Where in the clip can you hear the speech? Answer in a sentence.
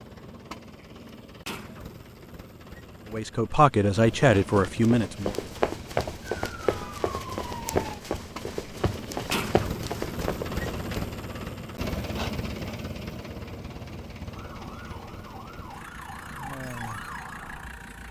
The speech can be heard from 3.1 to 5.3 s.